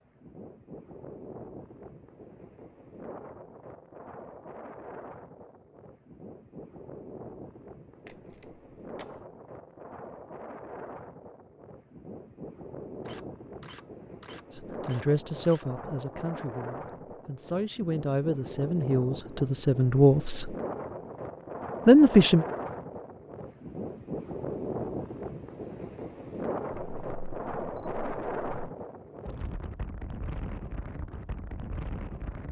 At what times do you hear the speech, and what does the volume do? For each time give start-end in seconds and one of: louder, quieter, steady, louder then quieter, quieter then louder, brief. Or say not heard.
14.5-20.6 quieter then louder
21.9-22.4 brief.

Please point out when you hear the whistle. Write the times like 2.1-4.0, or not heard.
not heard.